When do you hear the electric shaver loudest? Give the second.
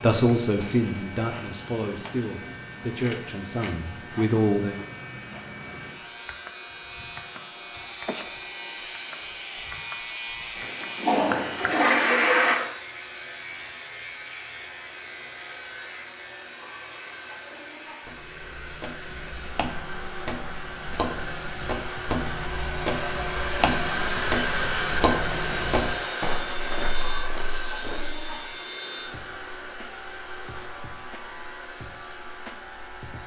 11 s.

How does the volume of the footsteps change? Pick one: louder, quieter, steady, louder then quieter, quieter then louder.
louder then quieter.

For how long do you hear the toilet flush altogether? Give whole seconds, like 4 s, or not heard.
2 s.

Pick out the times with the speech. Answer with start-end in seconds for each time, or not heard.
0.0-4.8.